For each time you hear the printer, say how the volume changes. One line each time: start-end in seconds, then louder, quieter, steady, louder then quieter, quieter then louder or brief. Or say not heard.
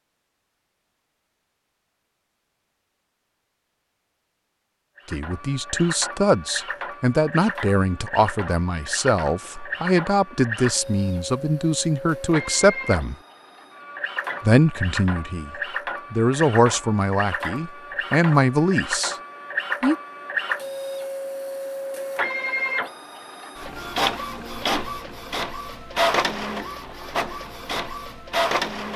5.0-28.9 louder.